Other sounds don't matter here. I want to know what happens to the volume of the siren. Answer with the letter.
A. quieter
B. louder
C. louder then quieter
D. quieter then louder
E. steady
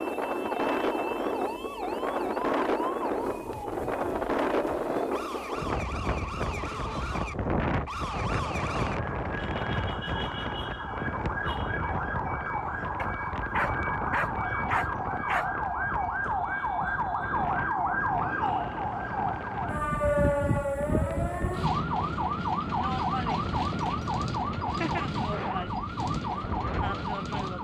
B.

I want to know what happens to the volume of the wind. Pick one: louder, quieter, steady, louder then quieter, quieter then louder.
quieter.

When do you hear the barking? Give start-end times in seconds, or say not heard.
12.9-15.4.